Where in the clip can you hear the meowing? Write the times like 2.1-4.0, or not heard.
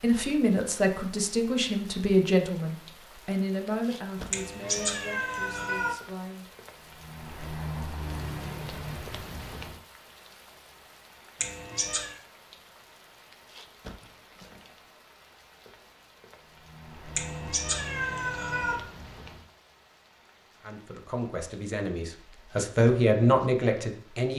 4.3-6.0, 11.4-12.2, 17.1-18.8.